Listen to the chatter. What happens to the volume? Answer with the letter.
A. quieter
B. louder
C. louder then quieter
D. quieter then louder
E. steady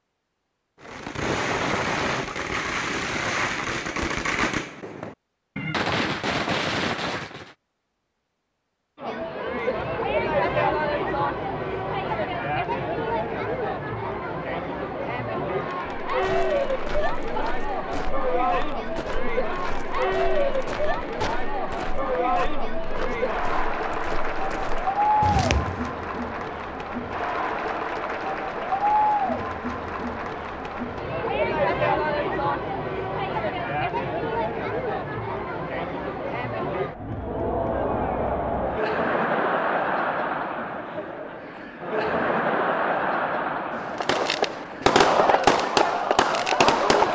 E.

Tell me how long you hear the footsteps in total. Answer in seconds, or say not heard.
10 s.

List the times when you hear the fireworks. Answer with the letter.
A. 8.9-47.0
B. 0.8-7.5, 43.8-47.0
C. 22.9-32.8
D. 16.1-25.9
B.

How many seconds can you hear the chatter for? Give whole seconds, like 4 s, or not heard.
38 s.